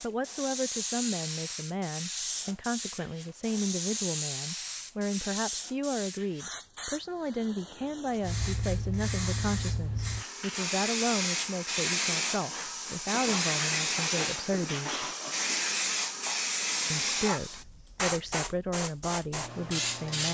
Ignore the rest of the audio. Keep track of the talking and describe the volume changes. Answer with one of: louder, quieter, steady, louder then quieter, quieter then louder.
steady.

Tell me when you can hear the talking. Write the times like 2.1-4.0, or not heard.
0.0-15.1, 16.9-20.2.